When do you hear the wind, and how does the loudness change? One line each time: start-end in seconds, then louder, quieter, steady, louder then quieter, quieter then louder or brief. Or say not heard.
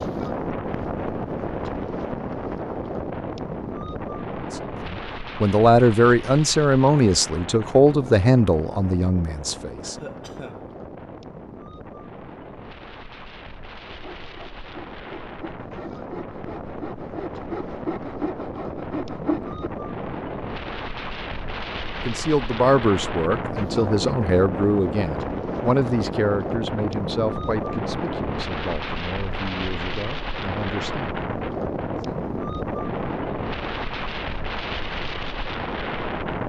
0.0-36.4 quieter then louder.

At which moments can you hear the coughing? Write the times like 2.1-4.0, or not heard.
9.8-10.7.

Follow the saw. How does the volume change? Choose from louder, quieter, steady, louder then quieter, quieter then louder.
louder.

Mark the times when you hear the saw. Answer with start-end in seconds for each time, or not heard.
13.8-19.7.